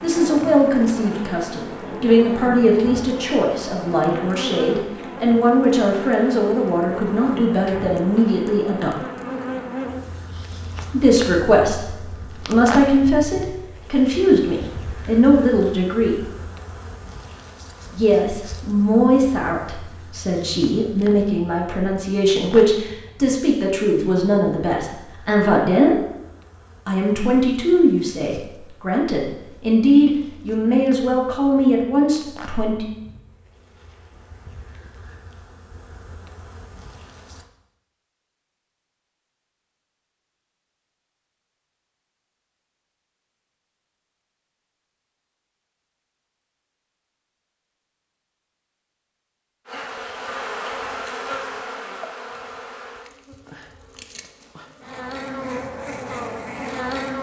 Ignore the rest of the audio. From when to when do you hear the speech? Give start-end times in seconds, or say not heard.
0.0-9.0, 10.9-16.2, 17.9-26.0, 26.9-32.9.